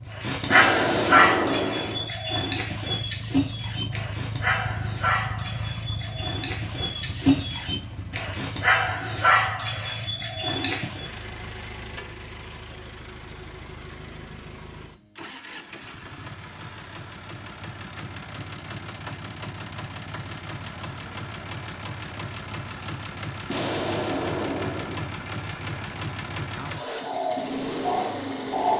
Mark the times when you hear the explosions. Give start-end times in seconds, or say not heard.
0.5-2.1, 23.5-25.1.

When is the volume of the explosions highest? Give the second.
1 s.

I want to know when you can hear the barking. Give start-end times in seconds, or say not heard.
0.2-11.1, 27.0-28.7.